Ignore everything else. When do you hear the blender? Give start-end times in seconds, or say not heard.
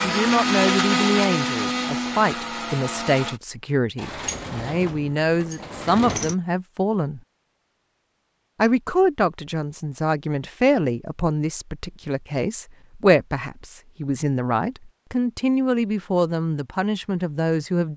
0.0-3.4.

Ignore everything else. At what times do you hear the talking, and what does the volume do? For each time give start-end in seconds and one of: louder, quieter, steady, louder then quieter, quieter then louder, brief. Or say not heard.
0.0-7.2 steady
8.6-17.9 steady.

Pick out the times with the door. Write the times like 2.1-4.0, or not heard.
4.0-6.3.